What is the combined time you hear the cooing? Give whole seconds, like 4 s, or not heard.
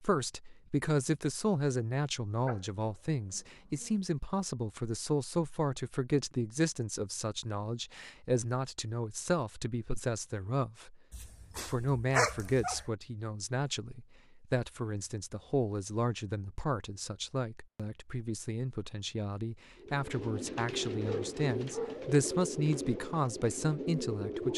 5 s.